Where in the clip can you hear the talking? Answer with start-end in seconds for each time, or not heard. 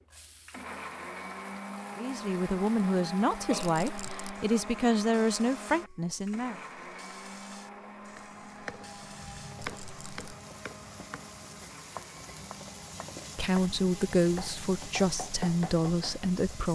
1.9-6.5, 13.3-16.7.